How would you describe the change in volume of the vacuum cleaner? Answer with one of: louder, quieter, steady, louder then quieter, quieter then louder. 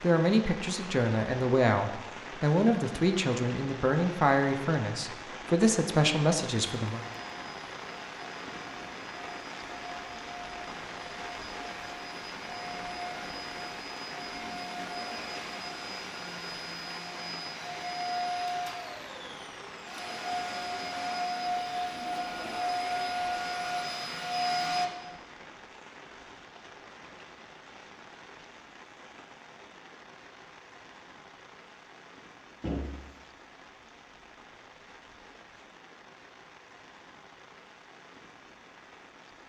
louder.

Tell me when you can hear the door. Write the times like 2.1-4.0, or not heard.
32.6-33.1.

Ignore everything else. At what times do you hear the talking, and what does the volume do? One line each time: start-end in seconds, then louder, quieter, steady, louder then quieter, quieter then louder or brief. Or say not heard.
0.0-7.0 steady.